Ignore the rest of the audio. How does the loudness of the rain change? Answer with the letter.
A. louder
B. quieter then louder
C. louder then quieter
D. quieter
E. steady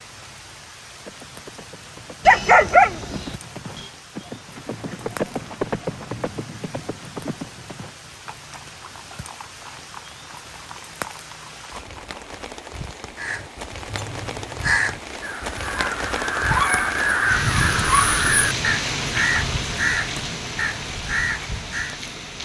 A.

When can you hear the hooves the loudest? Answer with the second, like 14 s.
6 s.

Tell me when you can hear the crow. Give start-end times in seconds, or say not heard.
13.2-22.0.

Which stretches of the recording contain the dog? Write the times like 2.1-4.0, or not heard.
2.2-3.9.